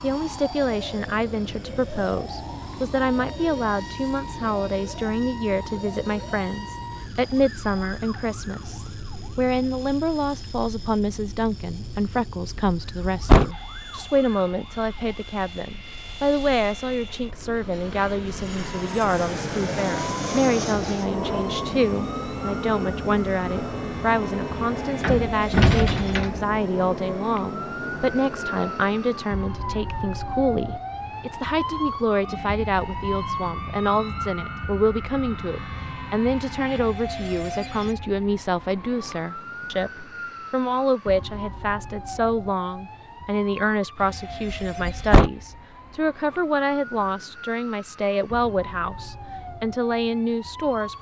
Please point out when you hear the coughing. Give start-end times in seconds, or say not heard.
not heard.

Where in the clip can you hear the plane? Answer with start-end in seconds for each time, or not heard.
0.0-29.4.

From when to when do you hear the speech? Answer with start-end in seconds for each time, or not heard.
0.0-50.9.